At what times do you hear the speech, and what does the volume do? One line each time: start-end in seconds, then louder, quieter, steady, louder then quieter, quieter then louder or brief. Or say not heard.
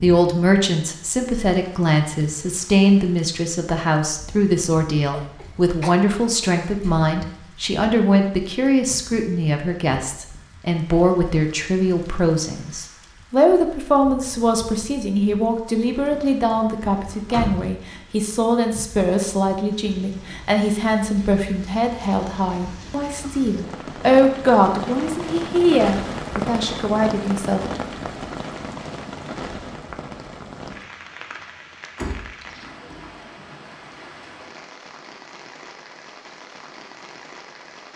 0.0-27.6 steady.